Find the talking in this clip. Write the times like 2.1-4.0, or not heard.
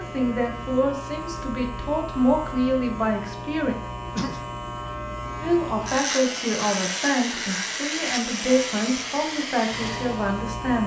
0.0-3.8, 5.4-10.8.